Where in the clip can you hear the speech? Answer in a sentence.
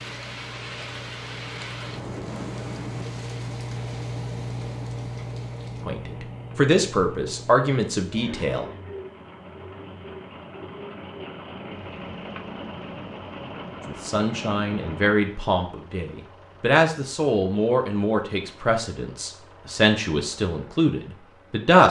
You can hear the speech from 5.8 to 8.7 s and from 13.8 to 21.8 s.